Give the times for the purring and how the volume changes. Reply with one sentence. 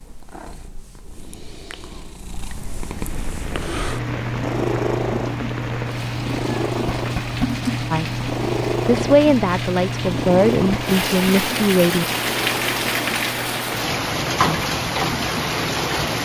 The purring can be heard from 0.0 to 15.9 s, getting louder then quieter.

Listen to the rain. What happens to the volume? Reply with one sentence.
The volume of the rain goes up.